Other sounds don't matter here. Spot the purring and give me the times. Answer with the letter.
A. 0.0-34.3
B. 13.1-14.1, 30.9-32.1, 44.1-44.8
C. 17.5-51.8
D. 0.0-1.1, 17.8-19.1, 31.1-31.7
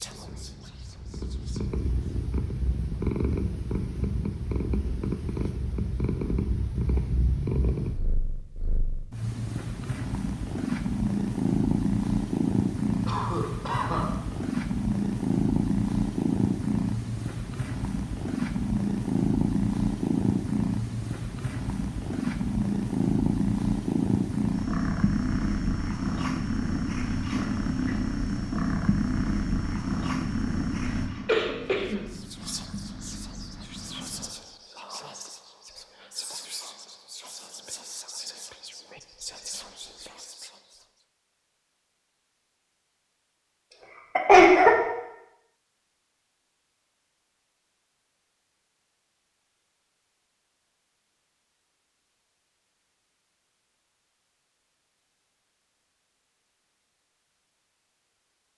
A.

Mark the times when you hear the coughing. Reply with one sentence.
You can hear the coughing from 13.1 to 14.1 s, from 30.9 to 32.1 s and from 44.1 to 44.8 s.